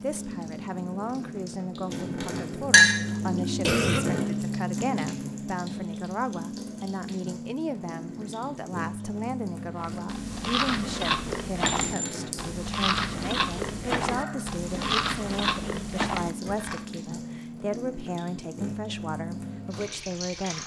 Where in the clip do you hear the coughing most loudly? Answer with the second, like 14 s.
4 s.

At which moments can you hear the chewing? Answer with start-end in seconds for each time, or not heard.
9.8-16.9.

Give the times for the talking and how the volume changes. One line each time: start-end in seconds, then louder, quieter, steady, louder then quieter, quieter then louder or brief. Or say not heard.
0.0-20.6 steady.